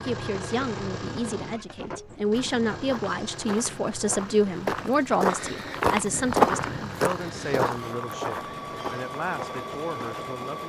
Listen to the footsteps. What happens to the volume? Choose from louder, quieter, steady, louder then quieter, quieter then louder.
louder then quieter.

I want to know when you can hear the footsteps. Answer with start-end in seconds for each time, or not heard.
2.3-10.2.